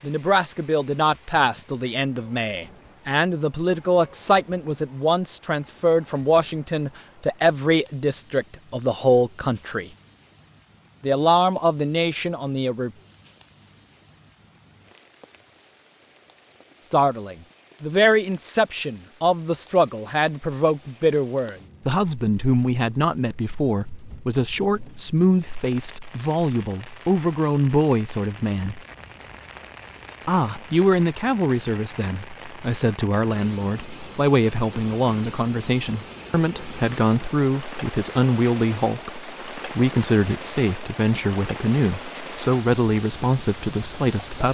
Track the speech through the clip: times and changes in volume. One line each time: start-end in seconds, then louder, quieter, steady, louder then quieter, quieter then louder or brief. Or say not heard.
0.0-9.9 steady
11.0-12.9 brief
16.9-28.8 steady
30.2-44.4 steady.